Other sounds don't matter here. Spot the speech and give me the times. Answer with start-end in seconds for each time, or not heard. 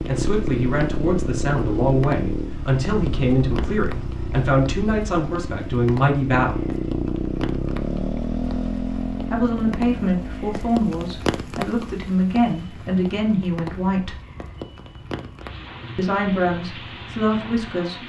0.1-6.7, 9.3-14.2, 15.9-18.0.